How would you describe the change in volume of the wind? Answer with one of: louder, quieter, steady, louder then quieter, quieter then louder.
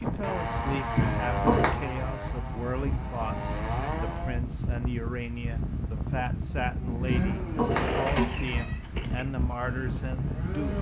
steady.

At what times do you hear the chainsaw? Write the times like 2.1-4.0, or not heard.
0.0-4.4, 6.6-10.7.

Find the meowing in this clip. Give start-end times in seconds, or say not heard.
0.9-1.9, 7.0-8.8.